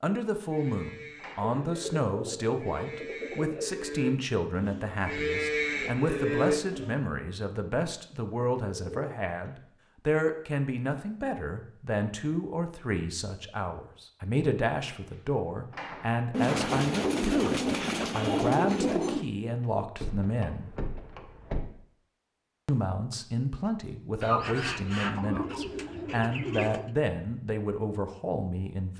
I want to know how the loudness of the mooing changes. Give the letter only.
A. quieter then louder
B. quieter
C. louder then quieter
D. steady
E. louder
E.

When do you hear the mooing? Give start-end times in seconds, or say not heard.
0.3-7.0.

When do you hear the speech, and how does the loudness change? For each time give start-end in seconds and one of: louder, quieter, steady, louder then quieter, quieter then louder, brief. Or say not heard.
0.0-20.8 steady
22.6-28.9 steady.